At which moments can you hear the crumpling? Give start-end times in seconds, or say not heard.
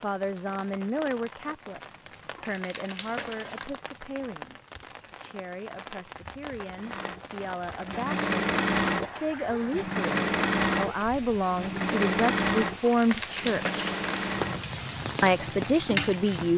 2.1-3.7, 12.6-14.2.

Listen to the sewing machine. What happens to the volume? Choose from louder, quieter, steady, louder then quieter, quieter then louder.
quieter.